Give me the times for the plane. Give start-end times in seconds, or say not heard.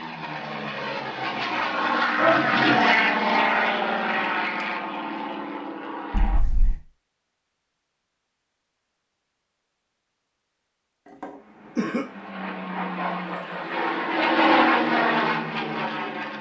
0.0-6.6, 11.3-16.3.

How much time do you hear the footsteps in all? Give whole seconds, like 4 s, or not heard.
not heard.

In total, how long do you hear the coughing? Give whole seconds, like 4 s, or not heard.
2 s.